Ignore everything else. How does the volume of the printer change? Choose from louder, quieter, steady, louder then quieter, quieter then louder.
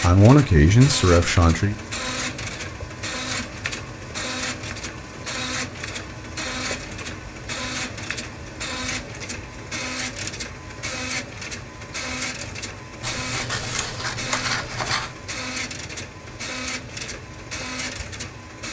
steady.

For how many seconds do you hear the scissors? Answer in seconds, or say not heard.
2 s.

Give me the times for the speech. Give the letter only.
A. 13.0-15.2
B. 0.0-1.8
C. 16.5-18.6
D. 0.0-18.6
B.